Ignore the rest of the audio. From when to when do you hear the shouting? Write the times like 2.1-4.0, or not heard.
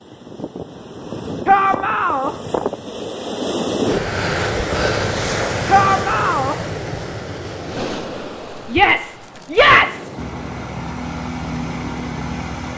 1.4-2.4, 5.7-6.5, 8.7-10.1.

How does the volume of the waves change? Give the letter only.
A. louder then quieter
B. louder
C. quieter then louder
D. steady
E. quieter
A.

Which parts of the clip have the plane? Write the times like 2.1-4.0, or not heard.
10.2-12.7.